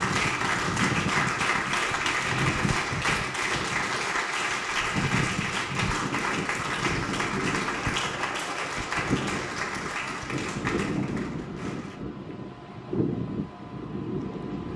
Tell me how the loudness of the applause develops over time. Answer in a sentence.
The loudness of the applause goes down.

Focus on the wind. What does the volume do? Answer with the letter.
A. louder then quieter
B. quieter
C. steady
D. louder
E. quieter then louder
C.